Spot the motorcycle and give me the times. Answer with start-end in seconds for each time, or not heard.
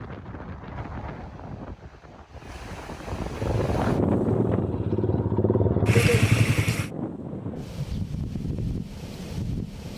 3.4-6.9.